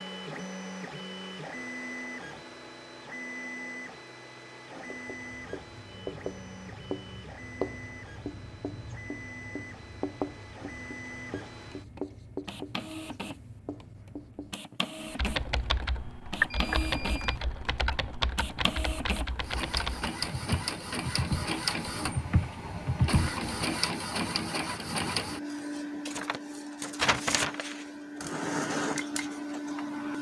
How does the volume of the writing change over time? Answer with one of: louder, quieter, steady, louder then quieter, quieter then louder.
quieter.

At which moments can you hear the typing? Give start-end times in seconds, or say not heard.
15.2-23.4.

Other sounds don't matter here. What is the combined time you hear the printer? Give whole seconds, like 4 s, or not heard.
30 s.